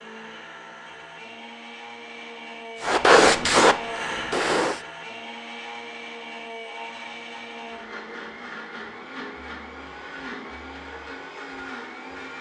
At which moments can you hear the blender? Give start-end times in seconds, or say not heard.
0.0-12.3.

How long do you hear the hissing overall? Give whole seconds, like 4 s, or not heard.
2 s.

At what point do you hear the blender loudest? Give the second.
4 s.